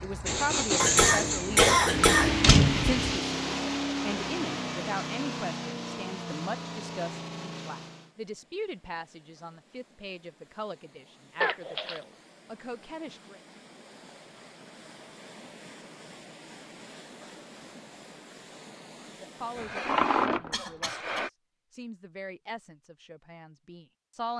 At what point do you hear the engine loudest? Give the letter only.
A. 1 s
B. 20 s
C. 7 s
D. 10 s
A.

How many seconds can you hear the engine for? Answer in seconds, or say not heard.
8 s.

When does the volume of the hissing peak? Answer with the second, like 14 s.
20 s.